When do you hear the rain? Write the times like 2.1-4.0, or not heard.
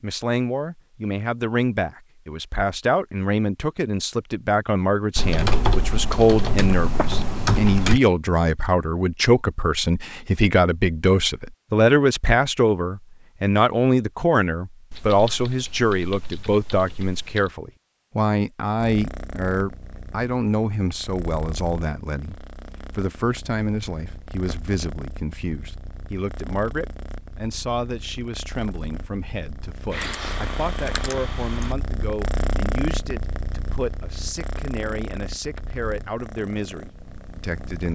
not heard.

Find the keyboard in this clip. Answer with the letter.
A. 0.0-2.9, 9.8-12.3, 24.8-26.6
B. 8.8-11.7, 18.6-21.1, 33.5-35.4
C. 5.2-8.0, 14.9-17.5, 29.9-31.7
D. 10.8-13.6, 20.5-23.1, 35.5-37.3
C.